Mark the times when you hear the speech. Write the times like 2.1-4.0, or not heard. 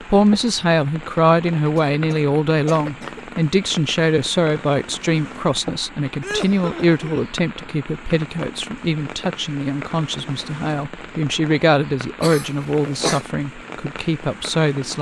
0.1-14.9.